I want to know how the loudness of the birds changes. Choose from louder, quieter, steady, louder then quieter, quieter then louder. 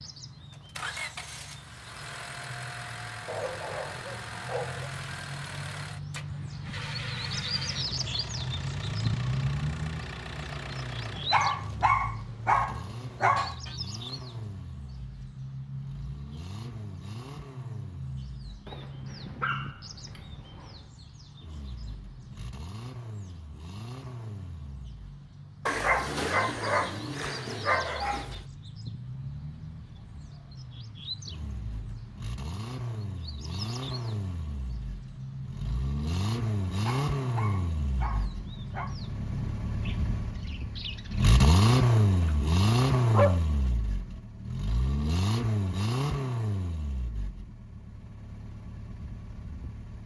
louder then quieter.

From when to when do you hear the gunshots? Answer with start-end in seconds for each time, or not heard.
not heard.